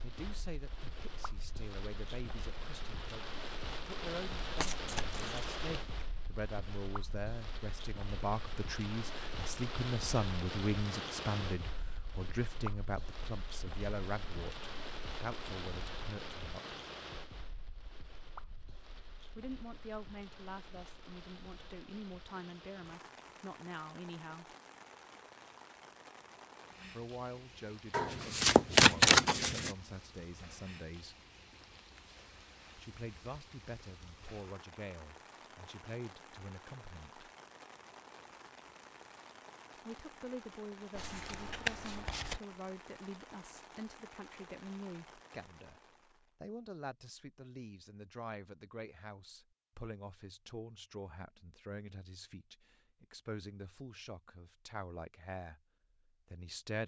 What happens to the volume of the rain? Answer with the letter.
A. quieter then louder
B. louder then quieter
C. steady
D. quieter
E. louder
D.